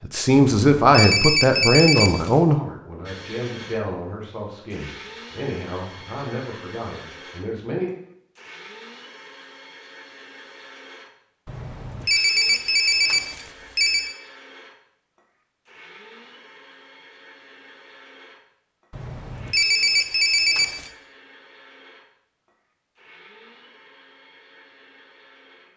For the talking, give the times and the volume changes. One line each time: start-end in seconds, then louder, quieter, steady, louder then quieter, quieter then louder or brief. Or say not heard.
0.0-7.9 quieter.